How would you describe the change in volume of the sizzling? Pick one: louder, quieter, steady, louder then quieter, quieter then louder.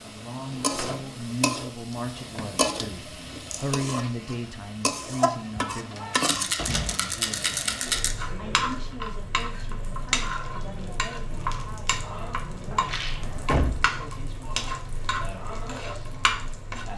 steady.